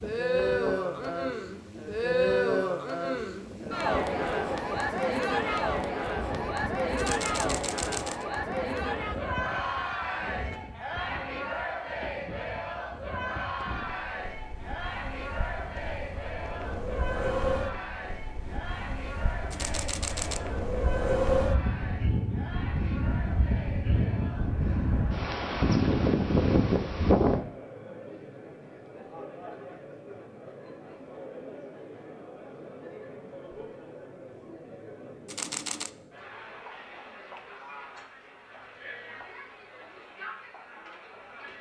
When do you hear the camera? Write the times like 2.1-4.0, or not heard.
7.0-8.2, 19.5-20.4, 35.2-35.9.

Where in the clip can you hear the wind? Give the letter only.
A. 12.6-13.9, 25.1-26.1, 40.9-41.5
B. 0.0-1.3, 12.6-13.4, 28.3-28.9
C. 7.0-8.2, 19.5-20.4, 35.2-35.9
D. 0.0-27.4
D.